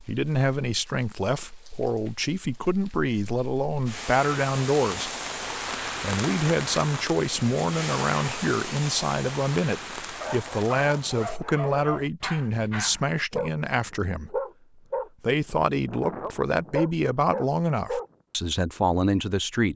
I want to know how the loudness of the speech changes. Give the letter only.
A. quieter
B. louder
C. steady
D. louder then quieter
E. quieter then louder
C.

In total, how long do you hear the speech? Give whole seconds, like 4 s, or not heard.
18 s.